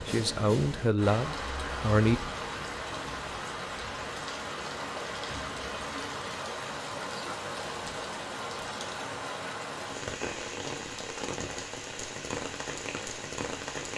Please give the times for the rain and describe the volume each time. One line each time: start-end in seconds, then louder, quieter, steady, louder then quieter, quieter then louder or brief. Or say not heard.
0.0-13.9 steady.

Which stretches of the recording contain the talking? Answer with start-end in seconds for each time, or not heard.
0.1-2.2.